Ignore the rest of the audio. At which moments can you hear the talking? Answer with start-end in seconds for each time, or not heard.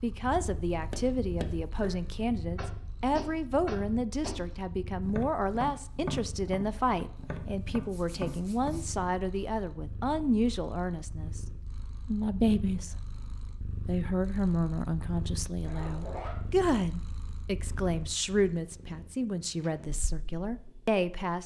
0.0-11.4, 12.1-12.9, 13.8-21.4.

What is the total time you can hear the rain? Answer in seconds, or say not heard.
not heard.